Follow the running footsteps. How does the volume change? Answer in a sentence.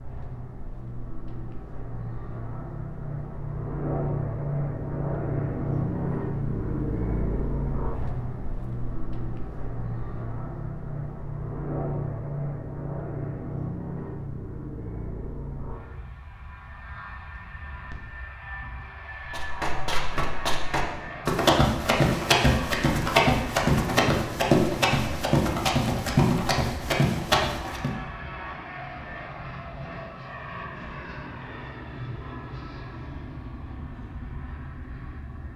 The loudness of the running footsteps goes up.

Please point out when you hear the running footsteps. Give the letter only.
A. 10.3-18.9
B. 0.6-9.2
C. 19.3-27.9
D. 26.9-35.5
C.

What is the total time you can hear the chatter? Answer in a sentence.
You can't hear the chatter here.